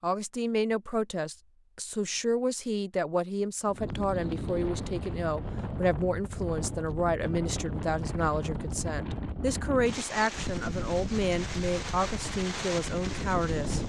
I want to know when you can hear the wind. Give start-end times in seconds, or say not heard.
3.6-13.8.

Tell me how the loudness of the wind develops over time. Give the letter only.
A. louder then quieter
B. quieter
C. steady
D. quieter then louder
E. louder
C.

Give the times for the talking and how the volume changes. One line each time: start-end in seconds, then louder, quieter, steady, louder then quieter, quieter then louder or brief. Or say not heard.
0.0-13.8 steady.